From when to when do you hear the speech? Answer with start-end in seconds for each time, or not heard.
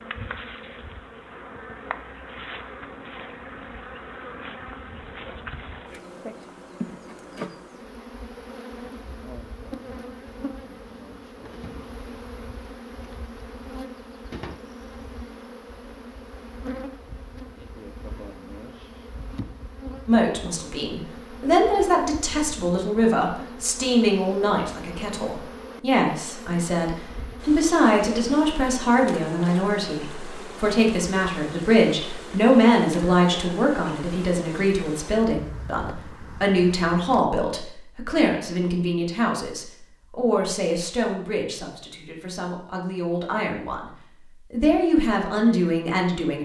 20.1-46.4.